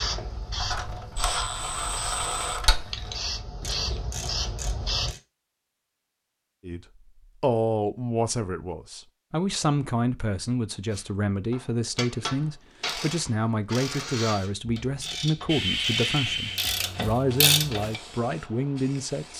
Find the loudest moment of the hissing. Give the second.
16 s.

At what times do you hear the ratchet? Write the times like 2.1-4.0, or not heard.
0.0-5.2, 10.9-18.0.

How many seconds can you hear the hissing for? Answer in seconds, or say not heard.
9 s.